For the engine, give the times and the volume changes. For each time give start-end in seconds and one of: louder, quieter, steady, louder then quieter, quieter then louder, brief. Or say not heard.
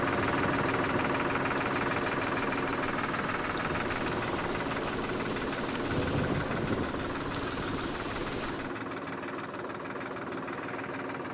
0.0-11.2 quieter.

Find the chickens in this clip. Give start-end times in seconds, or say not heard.
not heard.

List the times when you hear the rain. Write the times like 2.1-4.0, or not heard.
0.1-8.7.